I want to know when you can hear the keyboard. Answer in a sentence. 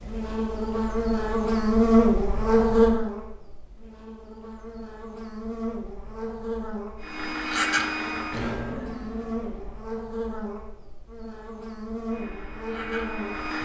You can't hear the keyboard here.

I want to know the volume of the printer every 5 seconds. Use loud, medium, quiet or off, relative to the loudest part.
off, loud, medium.